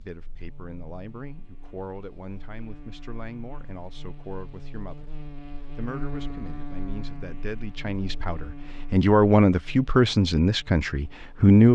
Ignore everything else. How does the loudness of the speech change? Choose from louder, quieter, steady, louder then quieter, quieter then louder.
louder.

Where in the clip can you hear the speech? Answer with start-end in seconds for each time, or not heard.
0.0-5.2, 5.8-11.6.